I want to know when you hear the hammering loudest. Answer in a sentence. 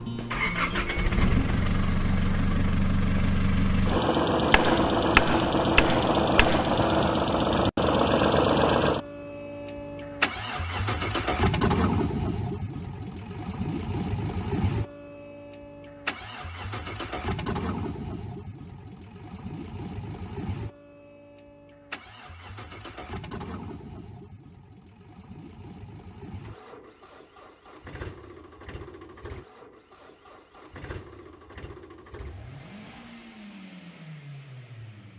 The volume of the hammering peaks at 5 seconds.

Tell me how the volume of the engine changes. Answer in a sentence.
The volume of the engine goes down.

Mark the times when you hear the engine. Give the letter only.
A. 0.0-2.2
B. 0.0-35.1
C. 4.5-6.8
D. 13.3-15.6
B.